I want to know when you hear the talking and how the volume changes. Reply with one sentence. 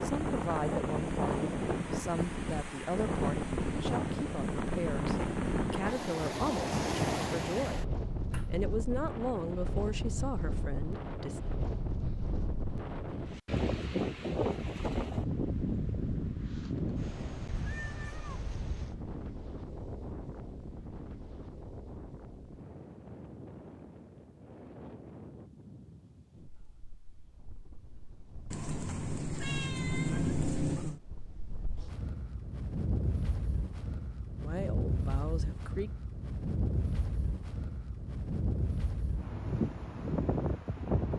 You can hear the talking from 0.0 to 11.4 s, at a steady volume; and briefly from 34.4 to 35.9 s.